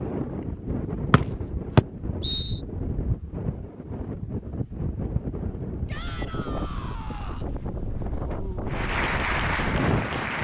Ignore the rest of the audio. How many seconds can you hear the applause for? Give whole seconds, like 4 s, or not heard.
2 s.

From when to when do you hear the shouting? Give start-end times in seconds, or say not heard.
5.8-7.5.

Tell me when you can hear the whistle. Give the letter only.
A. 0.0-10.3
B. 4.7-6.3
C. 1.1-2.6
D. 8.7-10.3
C.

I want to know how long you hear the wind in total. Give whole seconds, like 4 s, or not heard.
10 s.